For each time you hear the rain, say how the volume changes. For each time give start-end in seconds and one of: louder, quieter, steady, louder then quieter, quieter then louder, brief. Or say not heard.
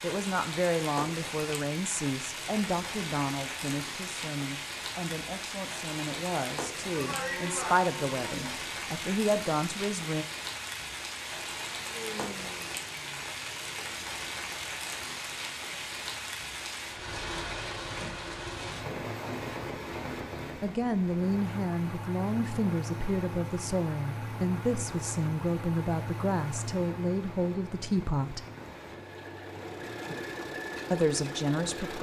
0.0-31.9 quieter.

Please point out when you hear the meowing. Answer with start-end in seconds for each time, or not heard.
not heard.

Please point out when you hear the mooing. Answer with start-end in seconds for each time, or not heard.
6.9-8.6.